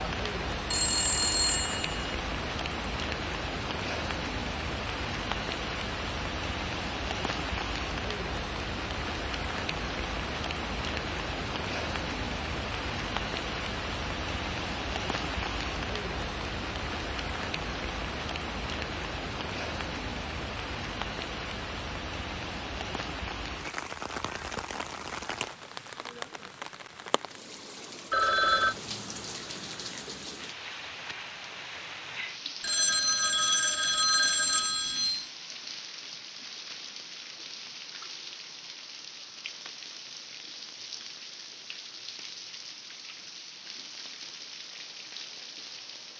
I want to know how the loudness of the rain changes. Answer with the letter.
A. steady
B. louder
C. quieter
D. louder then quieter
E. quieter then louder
C.